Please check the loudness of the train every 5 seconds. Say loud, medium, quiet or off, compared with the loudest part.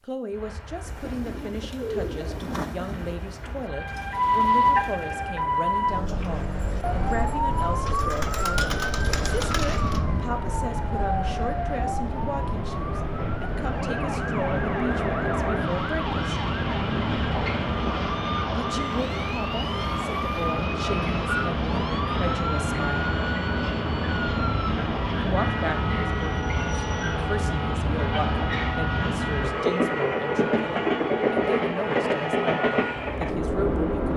quiet, quiet, medium, loud, loud, loud, loud.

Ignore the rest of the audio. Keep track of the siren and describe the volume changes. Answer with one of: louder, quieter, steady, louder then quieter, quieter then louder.
quieter.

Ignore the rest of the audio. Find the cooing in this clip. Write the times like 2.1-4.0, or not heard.
0.8-10.1.